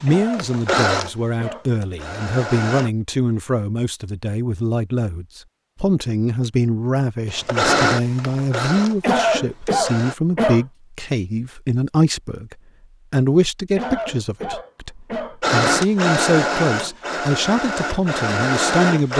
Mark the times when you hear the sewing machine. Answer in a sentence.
The sewing machine can be heard from 0.3 to 2.9 s, from 7.3 to 10.2 s and from 15.4 to 19.1 s.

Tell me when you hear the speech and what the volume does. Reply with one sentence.
The speech can be heard from 0.0 to 19.1 s, at a steady volume.